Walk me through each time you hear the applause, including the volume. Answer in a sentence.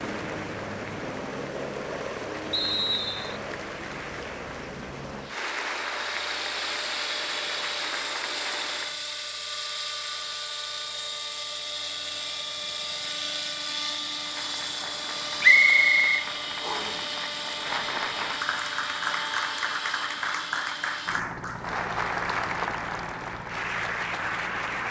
The applause can be heard from 0.0 to 9.0 s, getting louder; and from 14.1 to 24.8 s, getting louder.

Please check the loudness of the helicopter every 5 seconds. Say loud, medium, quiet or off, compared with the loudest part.
loud, loud, loud, loud, medium.